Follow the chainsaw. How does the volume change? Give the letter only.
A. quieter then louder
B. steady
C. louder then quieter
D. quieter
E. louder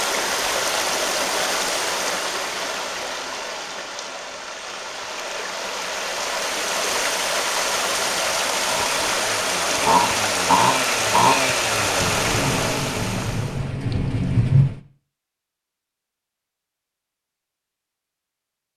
C.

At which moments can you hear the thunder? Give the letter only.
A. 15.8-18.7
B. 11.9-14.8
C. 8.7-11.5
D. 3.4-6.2
B.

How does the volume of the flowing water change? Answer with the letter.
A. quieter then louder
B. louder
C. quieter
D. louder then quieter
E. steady
A.